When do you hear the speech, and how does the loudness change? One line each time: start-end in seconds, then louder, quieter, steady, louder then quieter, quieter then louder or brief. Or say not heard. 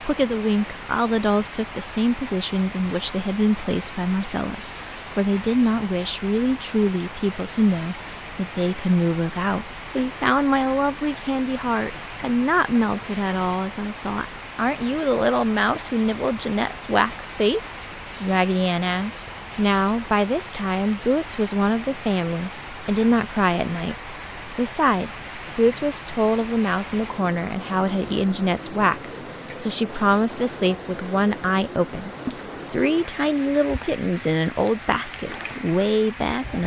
0.0-36.6 steady.